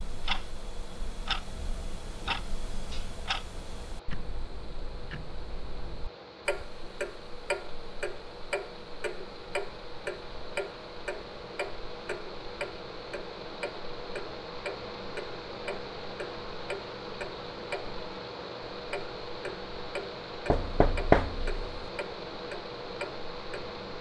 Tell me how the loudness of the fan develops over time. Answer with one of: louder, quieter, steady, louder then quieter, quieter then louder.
louder.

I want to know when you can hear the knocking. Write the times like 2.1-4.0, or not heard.
20.5-21.8.